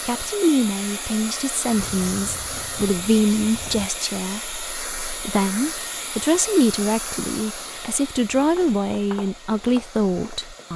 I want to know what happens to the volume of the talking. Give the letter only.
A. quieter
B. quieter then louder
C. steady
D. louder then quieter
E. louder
C.